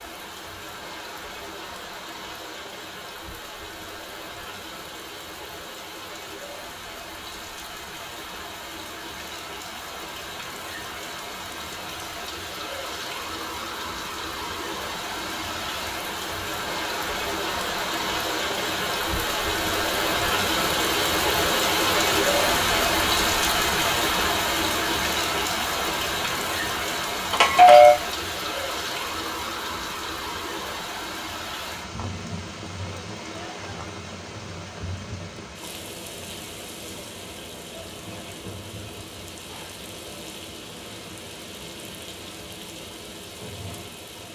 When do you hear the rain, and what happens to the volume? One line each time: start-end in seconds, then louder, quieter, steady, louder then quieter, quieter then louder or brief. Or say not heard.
0.0-44.3 louder then quieter.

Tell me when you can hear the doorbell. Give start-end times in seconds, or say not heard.
27.3-27.9.